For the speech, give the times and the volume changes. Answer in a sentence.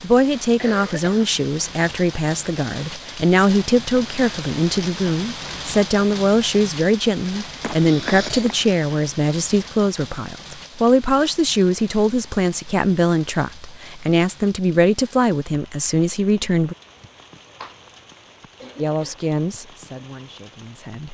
The speech can be heard from 0.0 to 16.8 s, at a steady volume; and briefly from 18.8 to 21.1 s.